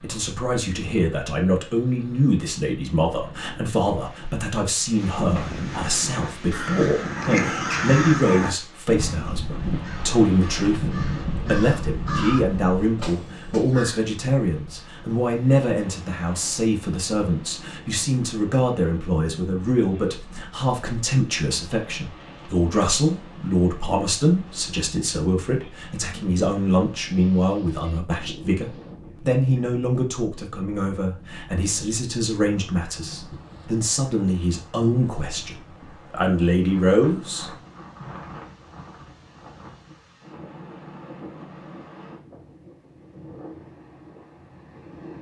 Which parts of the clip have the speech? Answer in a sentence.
The speech can be heard from 0.0 to 37.5 s.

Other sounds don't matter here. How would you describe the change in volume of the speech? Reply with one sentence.
The volume of the speech stays about the same.